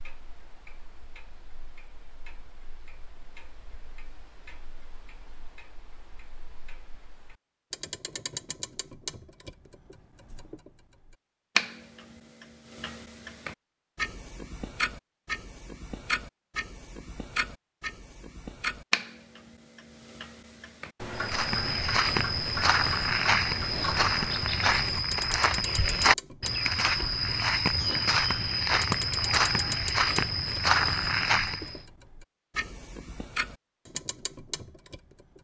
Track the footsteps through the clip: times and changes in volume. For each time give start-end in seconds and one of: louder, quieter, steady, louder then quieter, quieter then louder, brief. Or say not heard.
21.1-31.8 steady.